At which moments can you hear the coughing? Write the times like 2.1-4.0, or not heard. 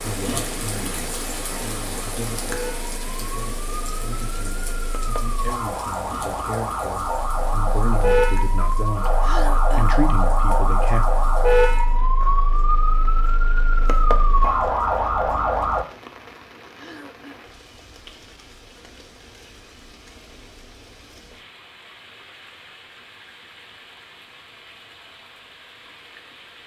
9.2-10.0, 16.8-17.4.